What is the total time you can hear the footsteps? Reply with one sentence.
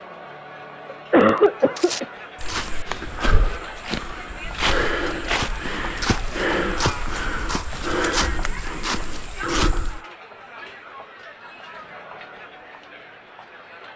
You can hear the footsteps for 8 seconds altogether.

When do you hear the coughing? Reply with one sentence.
You can hear the coughing from 0.9 to 2.0 s.